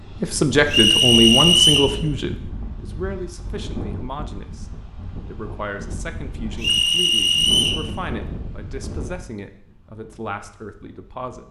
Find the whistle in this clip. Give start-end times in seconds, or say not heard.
0.7-1.9, 6.6-7.8.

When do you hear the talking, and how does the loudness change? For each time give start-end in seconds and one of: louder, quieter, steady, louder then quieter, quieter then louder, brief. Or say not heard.
0.2-11.4 quieter.